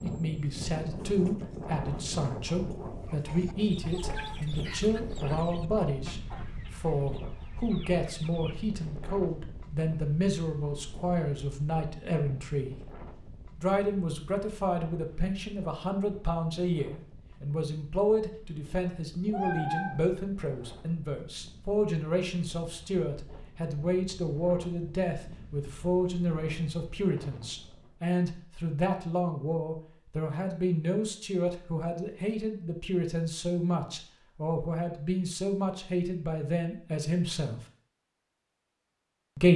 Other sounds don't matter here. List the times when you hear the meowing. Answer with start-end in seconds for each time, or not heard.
18.8-20.8.